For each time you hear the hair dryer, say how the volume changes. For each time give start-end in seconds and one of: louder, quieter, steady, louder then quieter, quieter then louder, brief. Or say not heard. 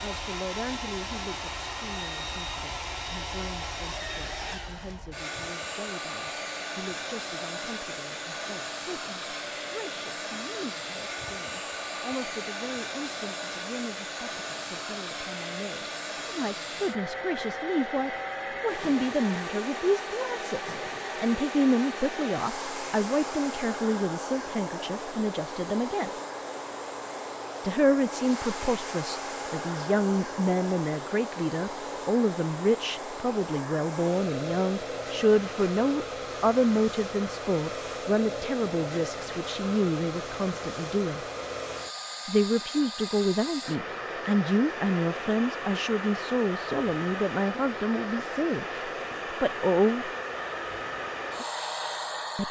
0.0-52.4 steady.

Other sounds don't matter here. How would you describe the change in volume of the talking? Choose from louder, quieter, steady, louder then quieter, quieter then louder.
louder.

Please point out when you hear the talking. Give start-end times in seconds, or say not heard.
0.0-26.1, 27.6-41.2, 42.2-50.1.